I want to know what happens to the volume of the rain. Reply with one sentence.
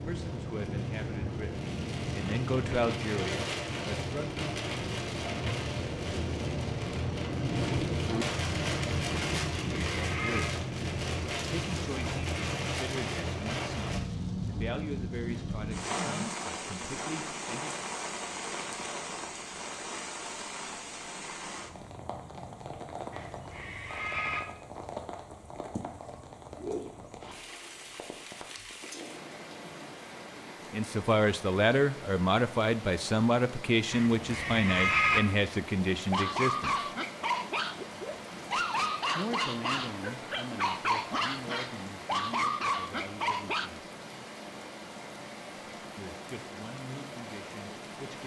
The volume of the rain goes down.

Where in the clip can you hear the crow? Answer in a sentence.
The crow can't be heard in this clip.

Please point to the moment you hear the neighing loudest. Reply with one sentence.
The volume of the neighing peaks at 35 seconds.